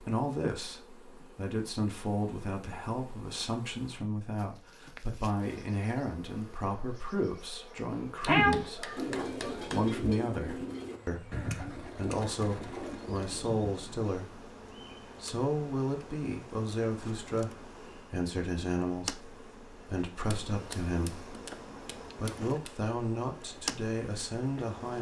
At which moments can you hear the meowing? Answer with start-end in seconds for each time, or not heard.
8.2-9.5.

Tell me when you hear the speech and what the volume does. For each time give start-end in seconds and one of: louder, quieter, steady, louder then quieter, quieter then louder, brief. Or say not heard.
0.0-14.3 steady
15.2-21.3 steady
22.1-24.9 brief.